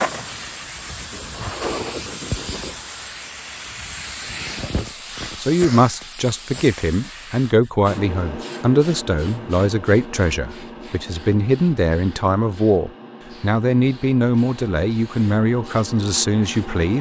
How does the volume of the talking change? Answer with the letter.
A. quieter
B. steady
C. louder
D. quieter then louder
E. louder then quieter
B.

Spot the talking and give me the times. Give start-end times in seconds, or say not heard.
4.8-16.9.